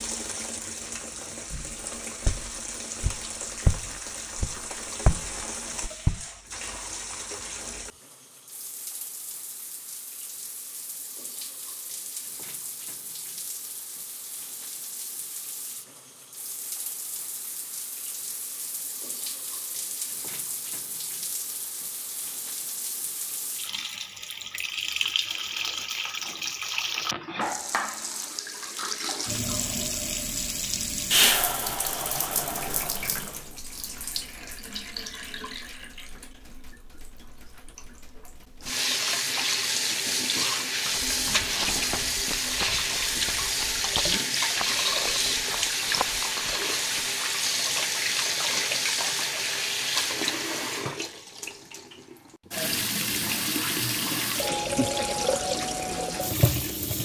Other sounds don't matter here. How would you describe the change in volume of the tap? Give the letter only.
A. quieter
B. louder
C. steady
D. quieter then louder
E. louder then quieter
B.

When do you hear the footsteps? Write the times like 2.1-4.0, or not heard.
1.5-6.2, 40.9-47.1.